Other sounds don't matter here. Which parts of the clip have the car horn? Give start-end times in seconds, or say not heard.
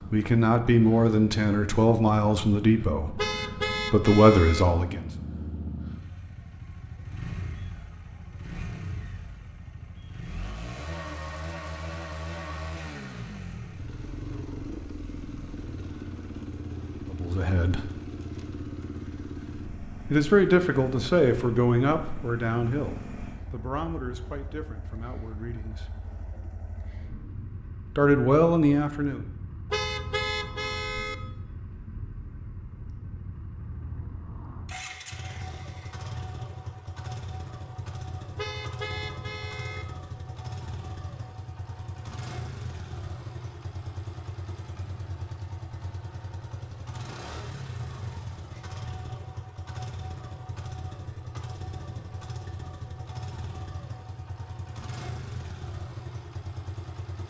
3.1-4.7, 29.7-31.1, 38.4-39.9.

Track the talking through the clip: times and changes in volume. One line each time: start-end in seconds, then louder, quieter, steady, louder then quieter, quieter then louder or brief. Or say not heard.
0.1-5.1 quieter then louder
17.1-17.9 brief
20.1-25.9 quieter
27.9-29.2 brief.